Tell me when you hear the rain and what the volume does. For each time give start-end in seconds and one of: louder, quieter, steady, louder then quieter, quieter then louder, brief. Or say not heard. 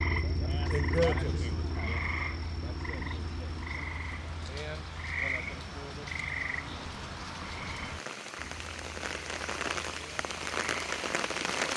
0.1-11.7 louder.